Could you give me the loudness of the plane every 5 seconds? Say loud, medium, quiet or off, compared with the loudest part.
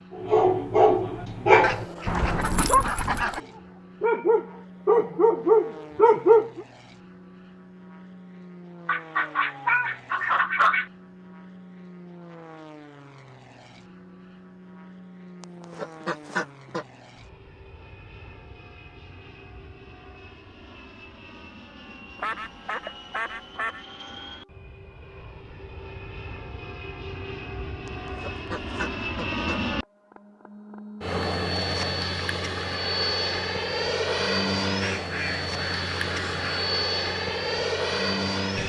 quiet, quiet, quiet, quiet, quiet, medium, loud, loud.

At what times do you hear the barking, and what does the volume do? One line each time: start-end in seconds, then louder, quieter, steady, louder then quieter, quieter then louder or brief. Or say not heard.
0.1-6.6 quieter then louder.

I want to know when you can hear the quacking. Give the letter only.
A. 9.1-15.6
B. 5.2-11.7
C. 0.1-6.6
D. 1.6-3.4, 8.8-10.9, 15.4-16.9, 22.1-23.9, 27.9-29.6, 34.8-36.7
D.